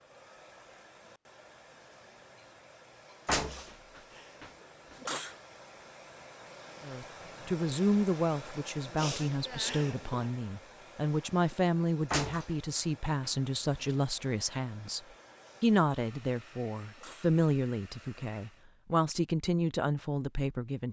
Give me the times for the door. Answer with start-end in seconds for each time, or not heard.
3.2-5.1, 12.1-13.9.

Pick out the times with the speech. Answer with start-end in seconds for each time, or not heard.
6.8-15.0, 15.6-20.8.